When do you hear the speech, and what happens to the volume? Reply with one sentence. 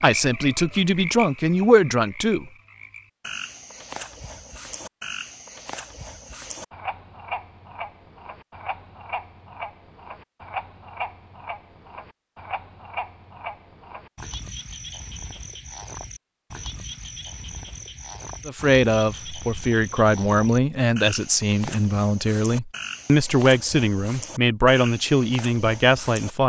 You can hear the speech briefly from 0.0 to 2.5 s; and from 18.4 to 26.4 s, at a steady volume.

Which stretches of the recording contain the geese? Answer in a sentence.
The geese can't be heard in this clip.